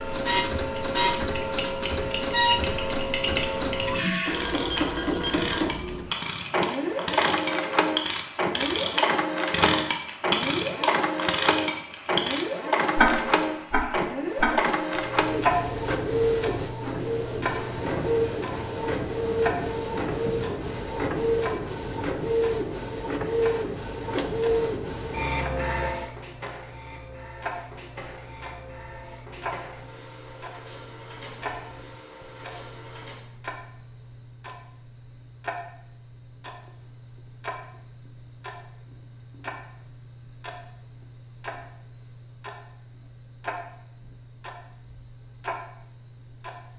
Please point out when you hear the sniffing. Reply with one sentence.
You can't hear the sniffing here.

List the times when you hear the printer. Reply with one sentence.
The printer can be heard from 0.0 to 33.3 s.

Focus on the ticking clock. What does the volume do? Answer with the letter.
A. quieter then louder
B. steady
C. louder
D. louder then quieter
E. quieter
E.